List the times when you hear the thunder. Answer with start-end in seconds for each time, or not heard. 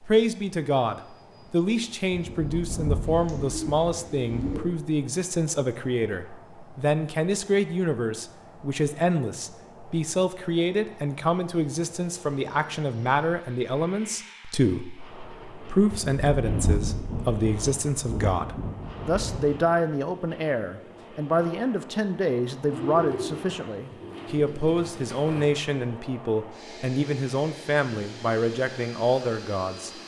2.1-4.8, 15.9-19.6.